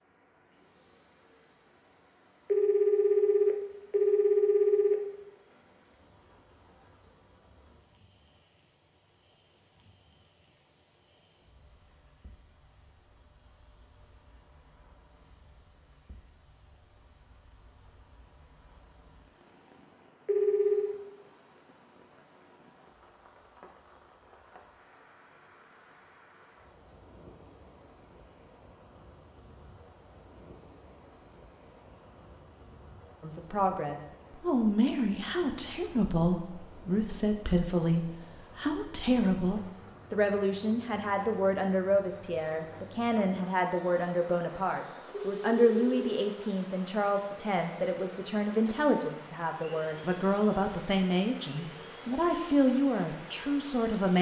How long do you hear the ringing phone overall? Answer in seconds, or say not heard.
4 s.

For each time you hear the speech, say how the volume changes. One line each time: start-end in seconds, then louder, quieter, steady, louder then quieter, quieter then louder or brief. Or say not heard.
33.2-54.1 steady.